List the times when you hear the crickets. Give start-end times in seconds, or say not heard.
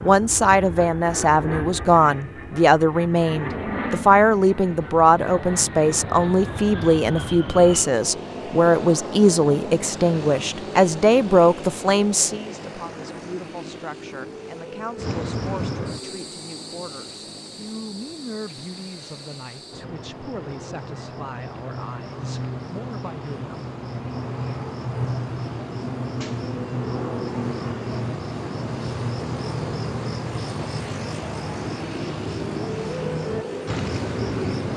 14.9-34.7.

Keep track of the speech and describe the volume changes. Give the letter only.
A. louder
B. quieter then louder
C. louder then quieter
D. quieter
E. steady
D.